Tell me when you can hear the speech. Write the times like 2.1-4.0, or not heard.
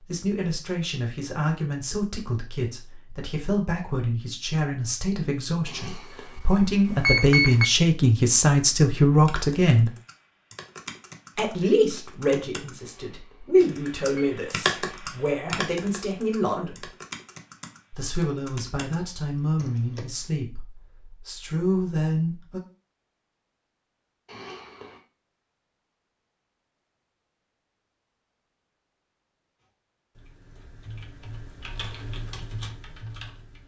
0.1-9.9, 11.3-16.9, 17.9-22.6.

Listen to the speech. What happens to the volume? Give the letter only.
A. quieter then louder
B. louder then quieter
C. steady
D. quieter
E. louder
B.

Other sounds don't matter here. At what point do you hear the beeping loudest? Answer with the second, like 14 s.
7 s.